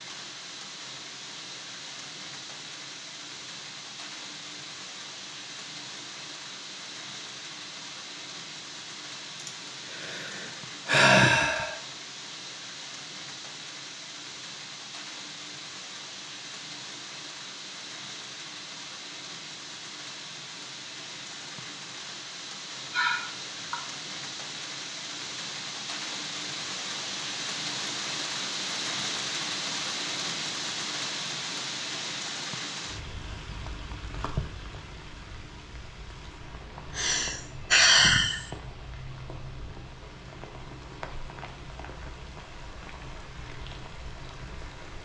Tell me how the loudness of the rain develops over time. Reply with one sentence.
The volume of the rain goes up, then down.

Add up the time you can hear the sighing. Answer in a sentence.
The sighing can be heard for 5 seconds in total.